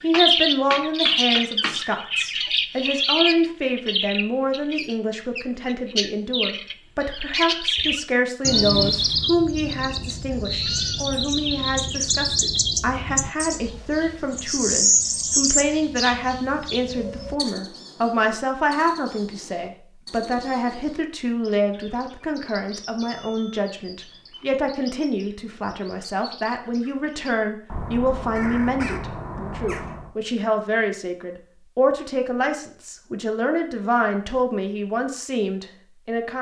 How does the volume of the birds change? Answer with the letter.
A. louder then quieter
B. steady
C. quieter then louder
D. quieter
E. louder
C.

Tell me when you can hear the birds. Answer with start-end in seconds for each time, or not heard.
0.1-30.1.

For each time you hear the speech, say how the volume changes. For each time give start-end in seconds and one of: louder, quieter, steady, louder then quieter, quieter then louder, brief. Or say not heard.
0.0-36.3 steady.